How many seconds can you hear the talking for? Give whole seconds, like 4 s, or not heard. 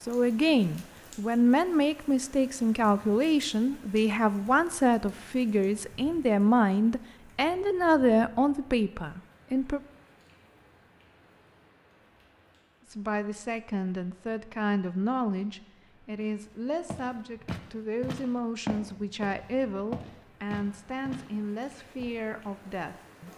20 s.